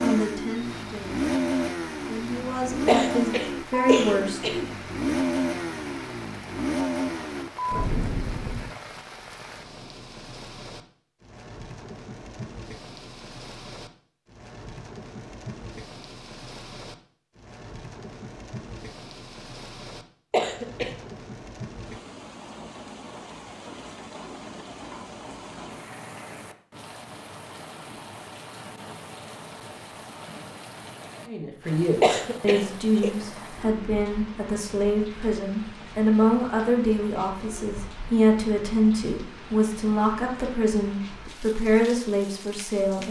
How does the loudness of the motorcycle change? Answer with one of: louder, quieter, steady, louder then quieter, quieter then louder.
steady.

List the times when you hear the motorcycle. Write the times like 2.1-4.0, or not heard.
0.0-8.8.